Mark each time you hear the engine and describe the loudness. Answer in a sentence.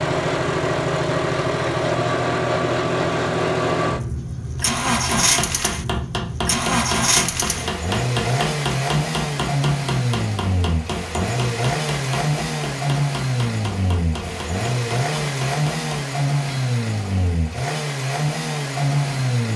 You can hear the engine from 0.0 to 19.5 s, at a steady volume.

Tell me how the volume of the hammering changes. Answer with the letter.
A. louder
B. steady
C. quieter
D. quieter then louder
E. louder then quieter
C.